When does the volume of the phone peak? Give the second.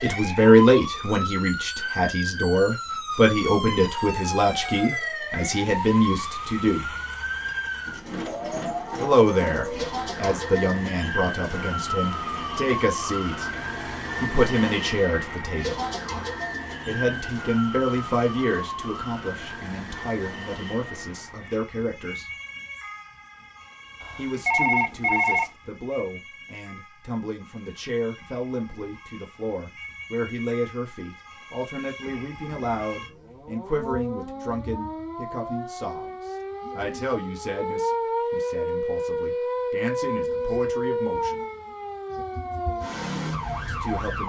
25 s.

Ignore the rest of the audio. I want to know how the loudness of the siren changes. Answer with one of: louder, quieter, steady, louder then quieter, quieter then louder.
quieter then louder.